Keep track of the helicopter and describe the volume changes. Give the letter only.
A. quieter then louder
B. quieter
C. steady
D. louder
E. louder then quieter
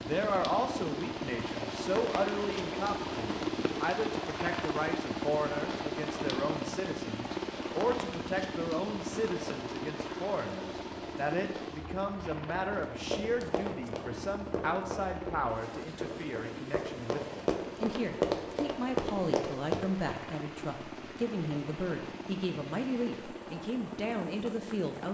B.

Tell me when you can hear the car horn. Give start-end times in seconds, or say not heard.
not heard.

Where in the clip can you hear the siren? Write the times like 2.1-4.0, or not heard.
not heard.